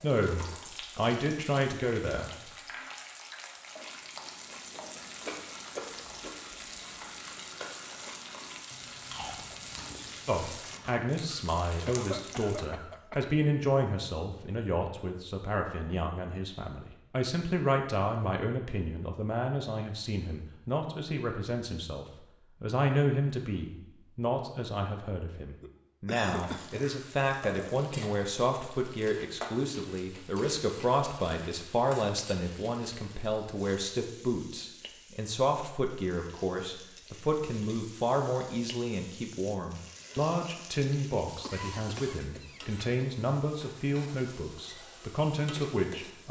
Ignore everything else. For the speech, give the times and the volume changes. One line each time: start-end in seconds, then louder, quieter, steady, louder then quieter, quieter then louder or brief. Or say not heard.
0.0-2.5 brief
10.2-46.2 steady.